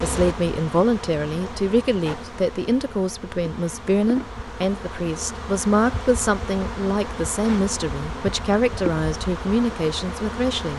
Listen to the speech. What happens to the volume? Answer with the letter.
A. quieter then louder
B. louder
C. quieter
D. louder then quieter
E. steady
E.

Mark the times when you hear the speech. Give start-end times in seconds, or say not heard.
0.0-10.7.